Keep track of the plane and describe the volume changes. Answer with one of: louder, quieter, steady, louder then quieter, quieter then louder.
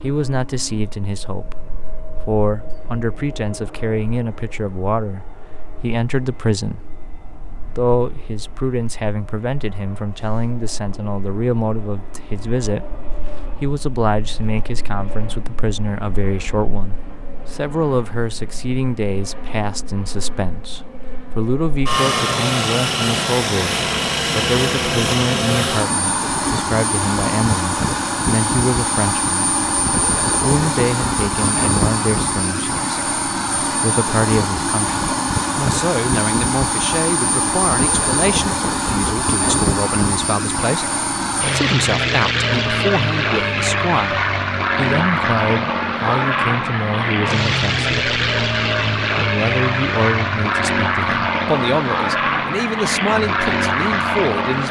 louder.